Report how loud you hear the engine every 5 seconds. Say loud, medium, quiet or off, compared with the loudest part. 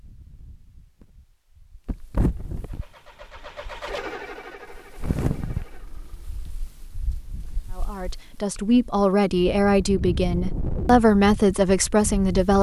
loud, quiet, off.